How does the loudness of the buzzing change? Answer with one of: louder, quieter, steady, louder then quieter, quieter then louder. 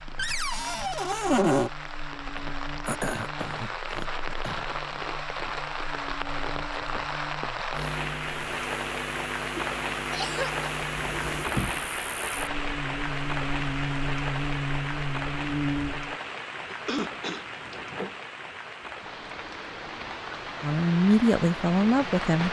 louder.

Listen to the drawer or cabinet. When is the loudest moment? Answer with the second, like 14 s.
1 s.